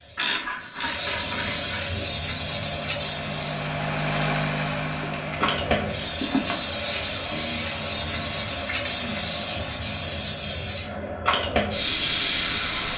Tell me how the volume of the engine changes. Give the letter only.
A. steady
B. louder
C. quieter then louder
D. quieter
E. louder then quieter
E.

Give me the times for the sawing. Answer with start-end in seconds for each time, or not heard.
not heard.